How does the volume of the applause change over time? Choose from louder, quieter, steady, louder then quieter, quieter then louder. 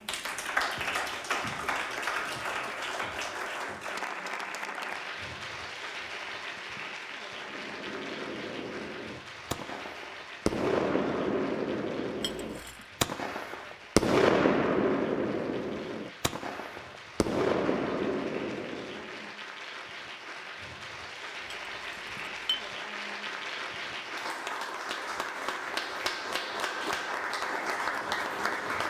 quieter then louder.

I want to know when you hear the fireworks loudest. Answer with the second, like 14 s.
14 s.